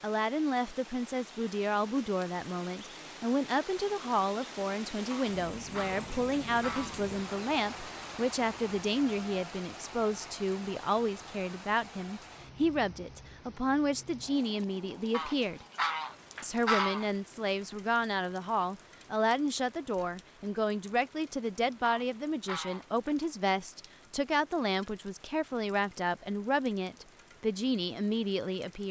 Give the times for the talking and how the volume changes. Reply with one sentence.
The talking can be heard from 0.0 to 15.7 s, at a steady volume; and from 16.4 to 28.8 s, at a steady volume.